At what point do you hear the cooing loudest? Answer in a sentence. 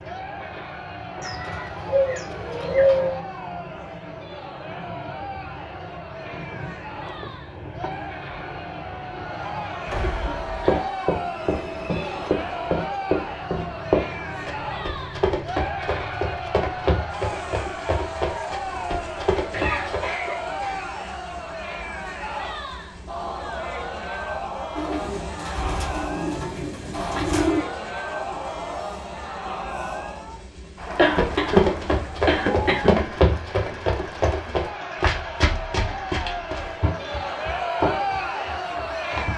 The volume of the cooing peaks at 3 seconds.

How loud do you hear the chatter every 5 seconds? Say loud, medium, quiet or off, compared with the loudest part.
medium, medium, loud, loud, loud, loud, medium, loud.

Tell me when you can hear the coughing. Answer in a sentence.
The coughing can be heard from 10.0 to 10.9 s, from 19.4 to 20.9 s and from 30.9 to 33.0 s.